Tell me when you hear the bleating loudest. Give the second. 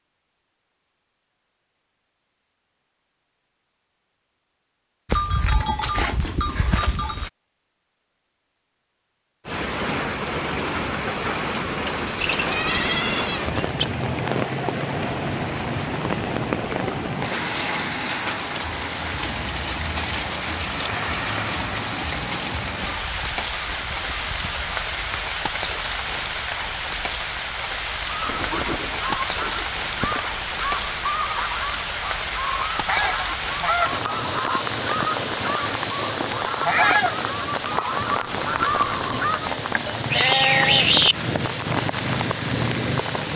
41 s.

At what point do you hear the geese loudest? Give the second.
37 s.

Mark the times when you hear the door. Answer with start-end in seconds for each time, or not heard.
not heard.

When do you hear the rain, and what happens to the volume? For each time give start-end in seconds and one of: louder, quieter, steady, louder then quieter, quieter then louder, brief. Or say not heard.
9.4-43.3 steady.